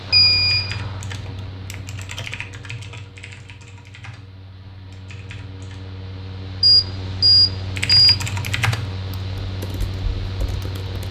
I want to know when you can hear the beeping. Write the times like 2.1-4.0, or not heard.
0.1-0.8, 6.6-8.2.